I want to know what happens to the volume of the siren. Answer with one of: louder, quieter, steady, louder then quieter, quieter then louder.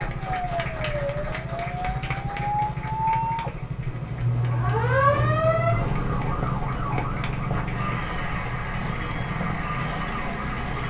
louder then quieter.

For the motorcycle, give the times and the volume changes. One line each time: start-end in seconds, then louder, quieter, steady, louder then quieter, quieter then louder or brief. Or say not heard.
0.0-10.8 steady.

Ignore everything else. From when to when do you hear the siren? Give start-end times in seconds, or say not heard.
0.0-10.8.